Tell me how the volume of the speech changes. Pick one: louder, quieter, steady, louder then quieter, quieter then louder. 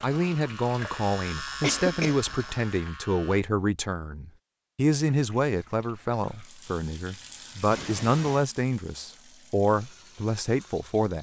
steady.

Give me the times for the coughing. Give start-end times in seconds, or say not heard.
1.6-2.2, 7.7-8.4.